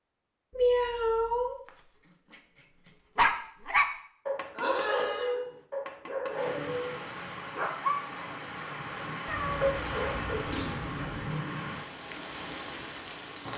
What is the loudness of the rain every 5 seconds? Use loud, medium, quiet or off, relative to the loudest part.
off, loud, loud.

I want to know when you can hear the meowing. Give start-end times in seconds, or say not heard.
0.5-1.6, 4.5-5.3, 9.2-11.3.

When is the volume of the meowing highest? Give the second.
1 s.